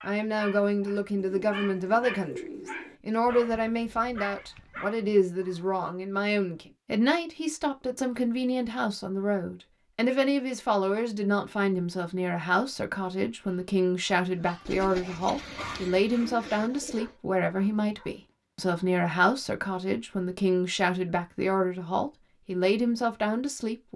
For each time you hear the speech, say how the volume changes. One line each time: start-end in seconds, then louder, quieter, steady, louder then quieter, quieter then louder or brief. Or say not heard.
0.0-23.9 steady.